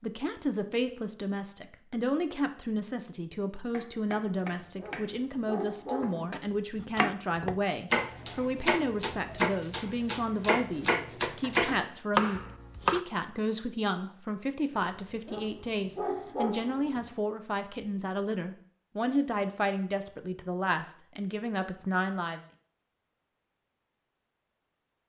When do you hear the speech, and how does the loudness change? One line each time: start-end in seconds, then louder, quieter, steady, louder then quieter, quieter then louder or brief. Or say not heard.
0.0-22.4 steady.